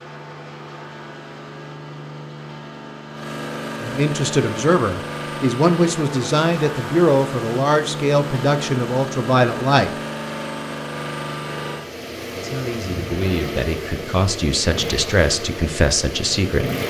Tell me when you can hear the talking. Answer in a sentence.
You can hear the talking from 3.8 to 9.9 s and from 12.3 to 16.7 s.